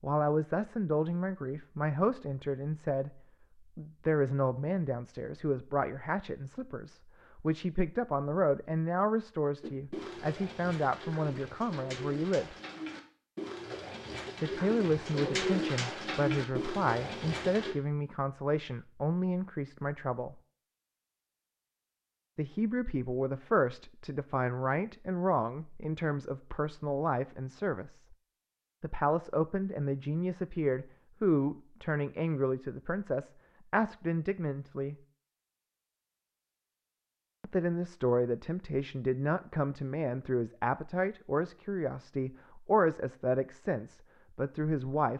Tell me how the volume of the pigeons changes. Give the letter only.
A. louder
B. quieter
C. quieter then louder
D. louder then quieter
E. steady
A.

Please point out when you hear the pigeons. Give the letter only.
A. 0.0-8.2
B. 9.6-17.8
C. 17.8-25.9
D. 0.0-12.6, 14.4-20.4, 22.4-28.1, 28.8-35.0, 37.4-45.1
B.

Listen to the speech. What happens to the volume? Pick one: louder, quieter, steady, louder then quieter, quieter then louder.
steady.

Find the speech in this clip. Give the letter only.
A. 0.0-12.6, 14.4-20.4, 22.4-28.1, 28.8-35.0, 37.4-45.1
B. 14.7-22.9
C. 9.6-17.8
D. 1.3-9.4
A.